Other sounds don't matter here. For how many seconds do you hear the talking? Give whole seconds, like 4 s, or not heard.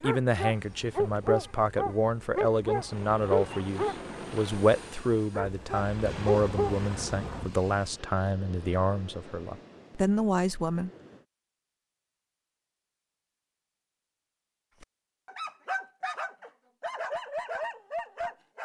11 s.